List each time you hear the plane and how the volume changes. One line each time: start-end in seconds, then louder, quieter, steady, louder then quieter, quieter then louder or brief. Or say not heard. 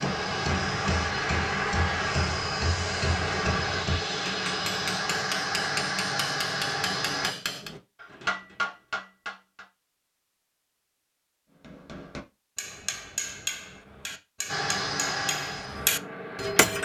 0.0-7.3 steady
14.4-16.8 brief.